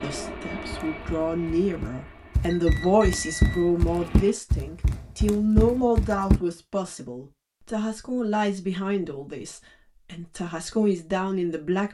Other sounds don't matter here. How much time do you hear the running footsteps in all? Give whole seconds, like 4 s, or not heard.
6 s.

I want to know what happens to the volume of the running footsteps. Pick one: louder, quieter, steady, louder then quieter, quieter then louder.
louder.